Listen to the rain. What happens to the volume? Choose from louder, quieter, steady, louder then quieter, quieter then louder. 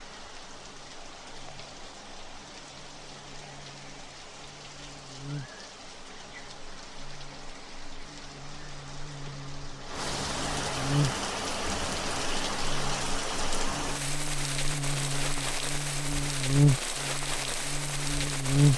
louder.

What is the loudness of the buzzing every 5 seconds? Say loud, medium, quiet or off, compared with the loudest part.
quiet, quiet, medium, loud.